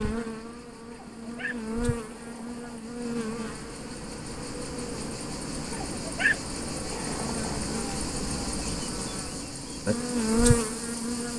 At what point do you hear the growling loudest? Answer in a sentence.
The volume of the growling peaks at 6 seconds.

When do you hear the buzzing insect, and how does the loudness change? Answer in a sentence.
You can hear the buzzing insect from 0.0 to 11.3 s, getting louder.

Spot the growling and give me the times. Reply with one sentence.
The growling can be heard from 0.9 to 2.8 s and from 5.7 to 7.6 s.